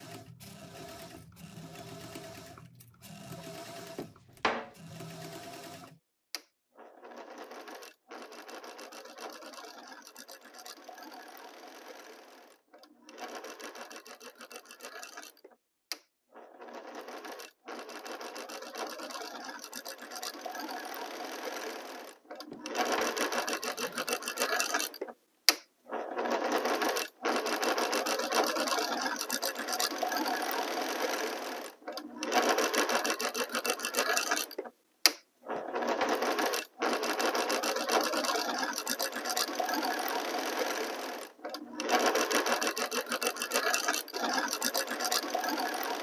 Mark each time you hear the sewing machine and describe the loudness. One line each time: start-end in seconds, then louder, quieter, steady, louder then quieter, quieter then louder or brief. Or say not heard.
0.0-45.9 louder.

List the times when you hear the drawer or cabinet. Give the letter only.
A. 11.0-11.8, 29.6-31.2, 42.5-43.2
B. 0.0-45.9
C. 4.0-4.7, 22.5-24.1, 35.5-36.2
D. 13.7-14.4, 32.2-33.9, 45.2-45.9
C.